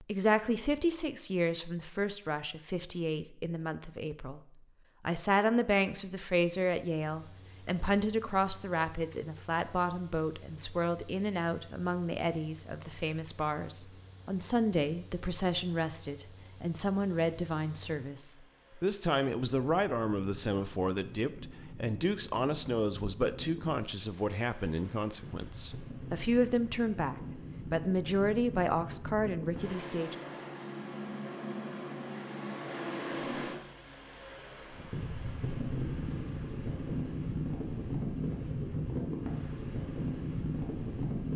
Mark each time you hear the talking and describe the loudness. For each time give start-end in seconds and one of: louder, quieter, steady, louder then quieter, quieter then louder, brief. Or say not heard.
0.0-4.4 quieter
5.0-30.1 steady.